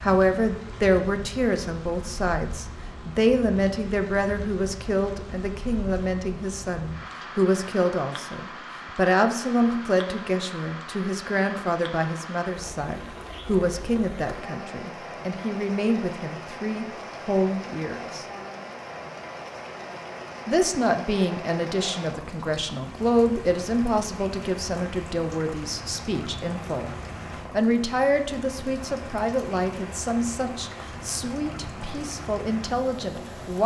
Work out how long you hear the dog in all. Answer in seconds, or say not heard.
not heard.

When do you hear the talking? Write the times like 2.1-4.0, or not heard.
0.0-18.2, 20.4-26.9, 27.5-33.6.